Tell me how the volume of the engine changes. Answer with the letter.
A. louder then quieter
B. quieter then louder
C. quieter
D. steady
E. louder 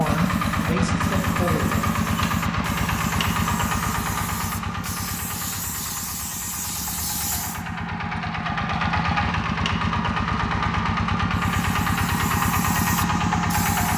B.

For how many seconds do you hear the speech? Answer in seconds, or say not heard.
2 s.